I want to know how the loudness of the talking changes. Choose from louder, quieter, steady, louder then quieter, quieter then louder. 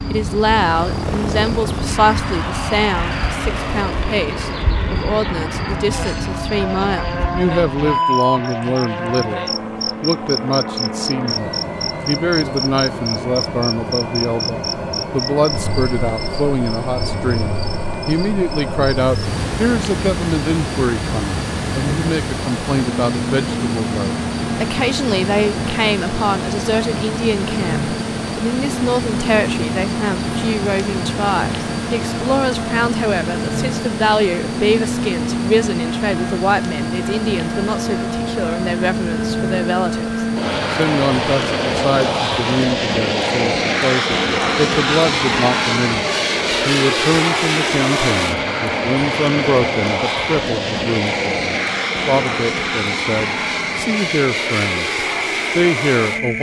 steady.